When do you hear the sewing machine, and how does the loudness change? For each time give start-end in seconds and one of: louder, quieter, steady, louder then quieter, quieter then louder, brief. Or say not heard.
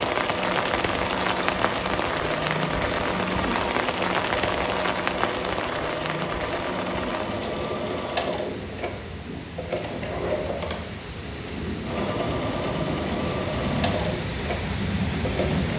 0.0-15.7 steady.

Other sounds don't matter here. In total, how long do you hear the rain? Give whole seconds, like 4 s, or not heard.
16 s.